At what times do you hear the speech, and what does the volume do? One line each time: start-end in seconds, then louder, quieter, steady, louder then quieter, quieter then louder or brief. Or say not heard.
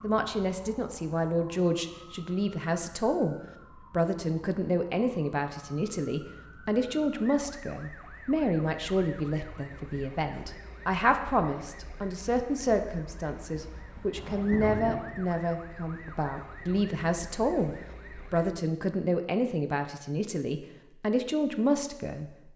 0.0-22.3 steady.